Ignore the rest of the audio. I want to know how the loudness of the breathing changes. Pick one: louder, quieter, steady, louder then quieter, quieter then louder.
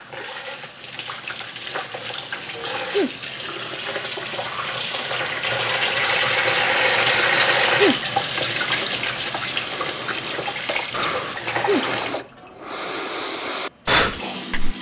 louder.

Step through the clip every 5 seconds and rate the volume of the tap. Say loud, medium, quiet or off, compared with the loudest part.
medium, loud, medium.